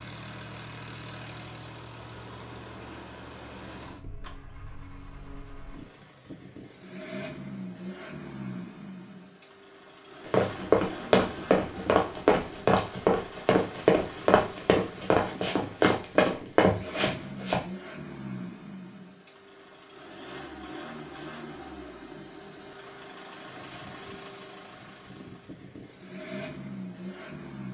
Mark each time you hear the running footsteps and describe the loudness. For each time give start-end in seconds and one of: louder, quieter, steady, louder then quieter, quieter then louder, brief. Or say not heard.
10.2-17.6 steady.